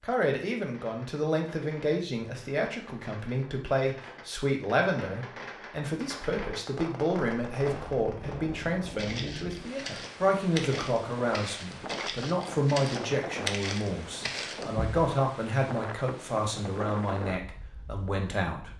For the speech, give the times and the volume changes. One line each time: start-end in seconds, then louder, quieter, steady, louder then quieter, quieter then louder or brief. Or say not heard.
0.0-18.7 steady.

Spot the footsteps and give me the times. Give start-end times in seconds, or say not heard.
7.5-14.9.